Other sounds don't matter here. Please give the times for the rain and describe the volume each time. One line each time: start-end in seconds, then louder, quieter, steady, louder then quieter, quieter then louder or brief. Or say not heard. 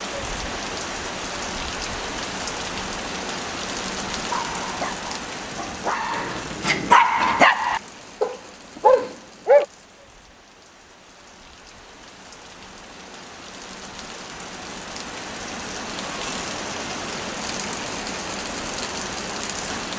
0.0-19.9 quieter then louder.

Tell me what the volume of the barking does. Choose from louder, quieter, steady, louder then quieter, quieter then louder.
louder.